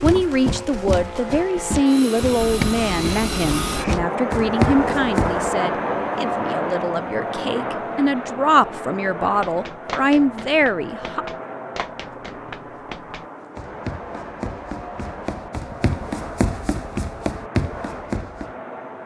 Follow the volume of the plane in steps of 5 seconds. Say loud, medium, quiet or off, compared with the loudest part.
loud, loud, medium, medium.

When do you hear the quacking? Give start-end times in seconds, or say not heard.
2.4-4.0.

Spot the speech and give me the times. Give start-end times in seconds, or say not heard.
0.0-11.2.